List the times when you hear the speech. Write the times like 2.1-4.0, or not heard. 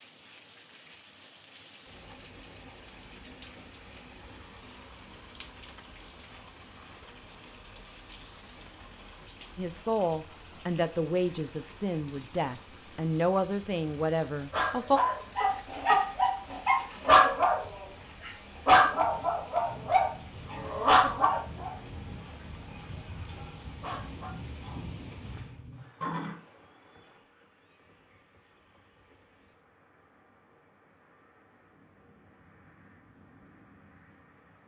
9.6-15.0.